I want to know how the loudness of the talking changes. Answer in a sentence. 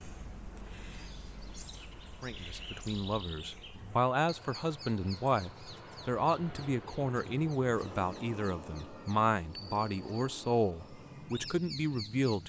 The loudness of the talking stays about the same.